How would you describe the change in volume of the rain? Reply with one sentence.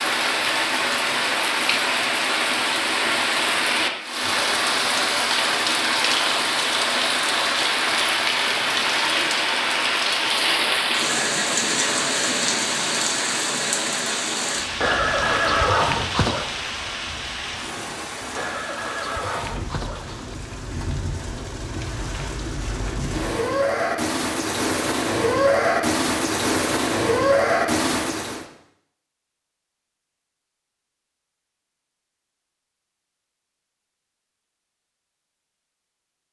The loudness of the rain goes down, then up.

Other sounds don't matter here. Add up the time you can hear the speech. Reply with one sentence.
The speech can't be heard in this clip.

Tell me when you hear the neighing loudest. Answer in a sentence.
The loudest moment of the neighing is at 16 seconds.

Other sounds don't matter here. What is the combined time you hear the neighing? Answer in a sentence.
The neighing can be heard for 4 seconds in total.